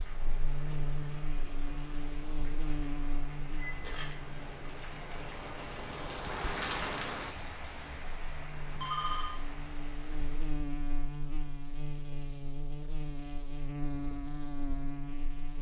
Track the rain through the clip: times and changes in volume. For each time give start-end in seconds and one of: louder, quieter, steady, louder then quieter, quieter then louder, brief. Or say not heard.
0.0-10.6 louder then quieter.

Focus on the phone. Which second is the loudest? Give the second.
9 s.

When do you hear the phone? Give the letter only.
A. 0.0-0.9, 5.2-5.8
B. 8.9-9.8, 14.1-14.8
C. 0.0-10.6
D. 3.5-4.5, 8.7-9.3
D.